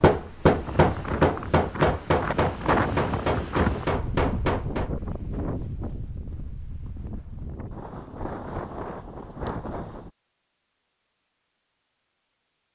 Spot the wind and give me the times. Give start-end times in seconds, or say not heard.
0.0-10.1.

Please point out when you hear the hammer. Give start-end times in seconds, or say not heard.
0.0-4.9.